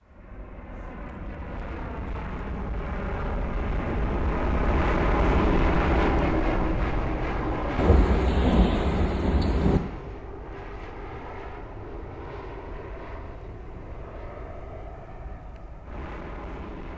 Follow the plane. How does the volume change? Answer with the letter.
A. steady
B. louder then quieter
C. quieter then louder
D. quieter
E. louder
B.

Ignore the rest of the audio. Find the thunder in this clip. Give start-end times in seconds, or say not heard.
7.8-9.8.